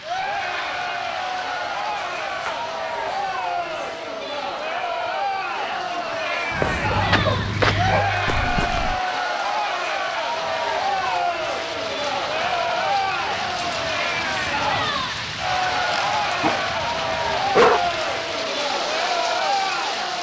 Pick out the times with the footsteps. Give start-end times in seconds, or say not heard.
6.5-9.0.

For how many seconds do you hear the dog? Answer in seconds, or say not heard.
4 s.